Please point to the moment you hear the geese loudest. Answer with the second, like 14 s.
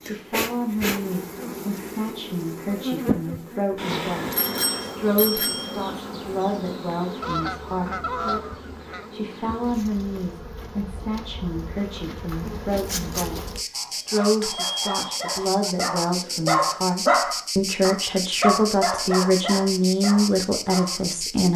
8 s.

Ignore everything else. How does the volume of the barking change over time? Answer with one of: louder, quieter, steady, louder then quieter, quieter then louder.
louder then quieter.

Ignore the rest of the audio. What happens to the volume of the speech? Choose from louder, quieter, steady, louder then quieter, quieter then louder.
louder.